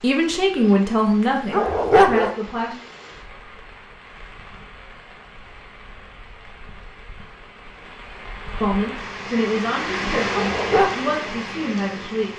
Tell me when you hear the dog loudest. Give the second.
2 s.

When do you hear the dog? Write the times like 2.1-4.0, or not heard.
1.5-2.3, 10.3-10.9.